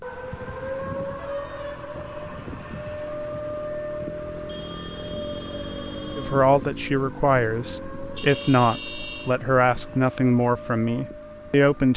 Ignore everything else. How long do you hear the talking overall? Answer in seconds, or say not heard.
6 s.